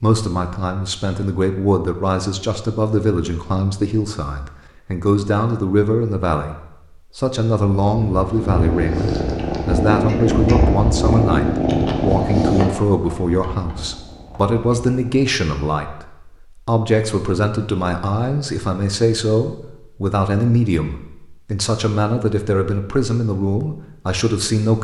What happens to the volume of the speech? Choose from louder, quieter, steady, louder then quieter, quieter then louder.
steady.